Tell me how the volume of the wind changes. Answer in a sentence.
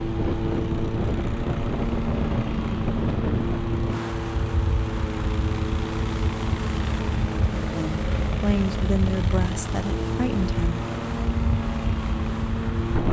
The loudness of the wind goes down.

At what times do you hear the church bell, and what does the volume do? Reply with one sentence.
You can't hear the church bell here.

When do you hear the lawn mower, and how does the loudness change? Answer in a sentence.
The lawn mower can be heard from 0.0 to 13.0 s, at a steady volume.